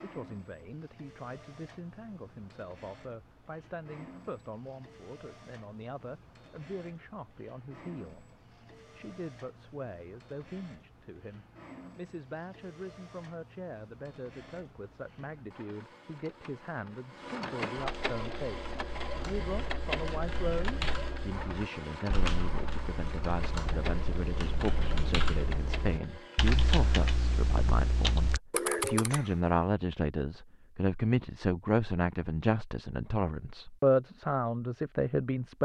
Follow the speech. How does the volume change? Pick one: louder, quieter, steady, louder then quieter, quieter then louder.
louder.